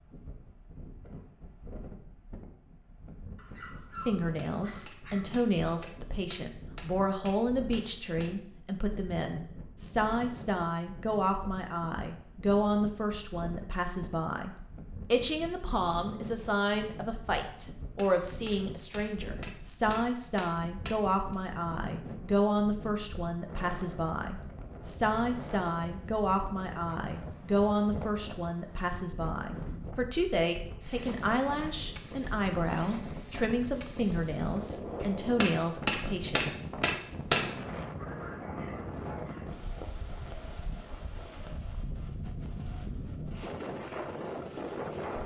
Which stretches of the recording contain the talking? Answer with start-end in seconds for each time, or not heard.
4.0-36.5.